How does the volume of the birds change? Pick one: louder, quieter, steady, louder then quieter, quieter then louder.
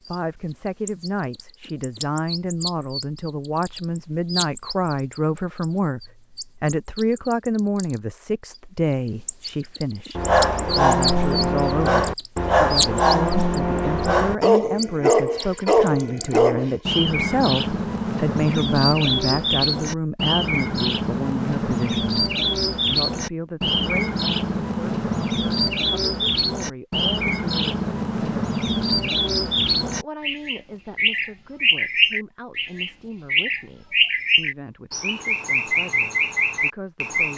louder.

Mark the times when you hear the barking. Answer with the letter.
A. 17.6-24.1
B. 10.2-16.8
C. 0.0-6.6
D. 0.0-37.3
B.